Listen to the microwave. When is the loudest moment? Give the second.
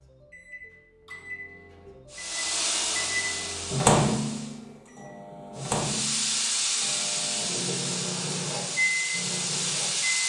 4 s.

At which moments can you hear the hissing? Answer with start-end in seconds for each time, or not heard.
2.1-4.6, 5.5-10.2.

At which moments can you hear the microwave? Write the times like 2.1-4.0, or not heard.
0.0-10.2.